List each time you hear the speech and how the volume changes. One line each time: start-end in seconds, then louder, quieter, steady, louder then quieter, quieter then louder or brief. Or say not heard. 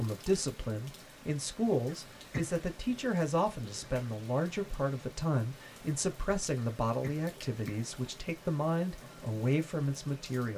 0.0-10.5 steady.